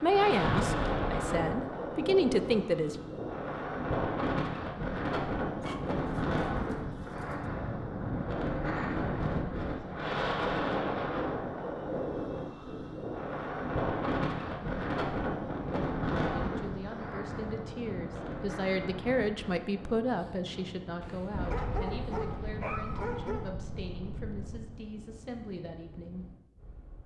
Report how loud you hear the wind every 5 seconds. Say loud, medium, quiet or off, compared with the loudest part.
loud, loud, loud, loud, quiet, quiet.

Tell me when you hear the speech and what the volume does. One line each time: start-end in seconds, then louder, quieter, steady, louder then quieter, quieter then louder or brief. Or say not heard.
0.0-3.0 brief
16.3-26.3 louder then quieter.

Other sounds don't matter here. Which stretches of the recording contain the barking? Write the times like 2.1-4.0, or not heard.
5.6-7.5, 21.0-23.6.